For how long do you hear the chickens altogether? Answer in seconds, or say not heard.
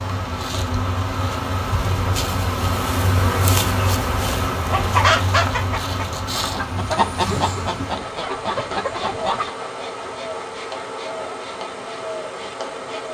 5 s.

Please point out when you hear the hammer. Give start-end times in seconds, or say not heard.
not heard.